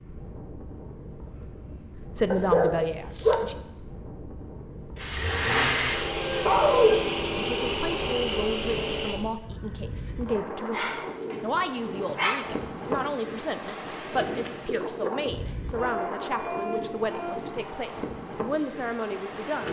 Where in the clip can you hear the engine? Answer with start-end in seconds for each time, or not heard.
5.0-9.2.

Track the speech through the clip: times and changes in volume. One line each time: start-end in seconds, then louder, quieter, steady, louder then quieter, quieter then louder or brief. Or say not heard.
2.1-3.5 brief
7.5-19.6 steady.